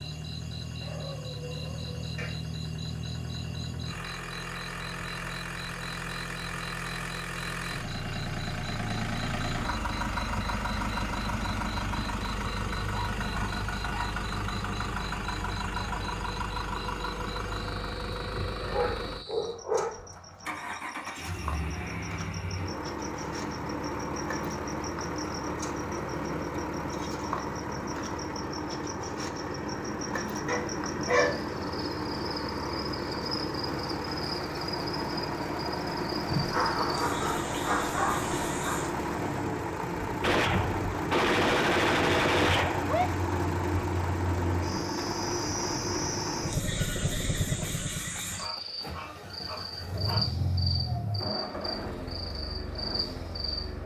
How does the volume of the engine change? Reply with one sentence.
The volume of the engine stays about the same.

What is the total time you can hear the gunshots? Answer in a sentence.
The gunshots can be heard for 3 seconds in total.